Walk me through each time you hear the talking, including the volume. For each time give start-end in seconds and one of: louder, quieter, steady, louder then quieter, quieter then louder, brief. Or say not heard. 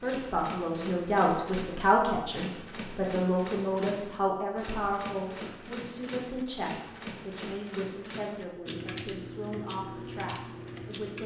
0.0-11.2 quieter.